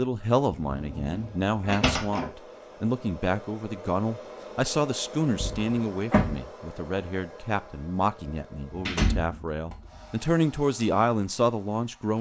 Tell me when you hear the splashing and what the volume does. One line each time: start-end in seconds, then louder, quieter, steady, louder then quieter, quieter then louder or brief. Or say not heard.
not heard.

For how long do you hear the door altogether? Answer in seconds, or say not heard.
4 s.